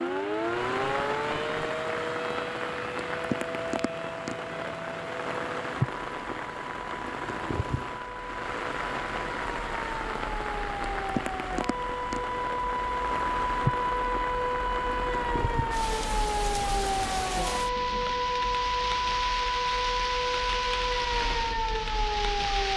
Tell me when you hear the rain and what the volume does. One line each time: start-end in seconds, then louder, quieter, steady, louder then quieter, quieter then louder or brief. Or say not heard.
0.0-22.7 steady.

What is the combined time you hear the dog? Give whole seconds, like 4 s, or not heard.
not heard.